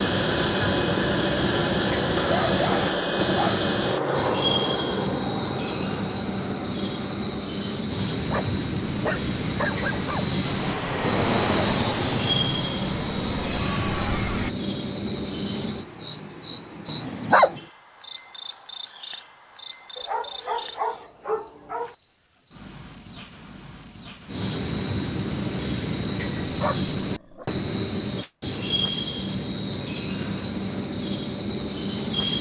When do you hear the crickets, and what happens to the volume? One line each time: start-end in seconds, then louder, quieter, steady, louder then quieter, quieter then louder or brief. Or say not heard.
0.0-32.3 steady.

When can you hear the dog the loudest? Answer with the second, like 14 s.
17 s.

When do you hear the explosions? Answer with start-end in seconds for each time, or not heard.
not heard.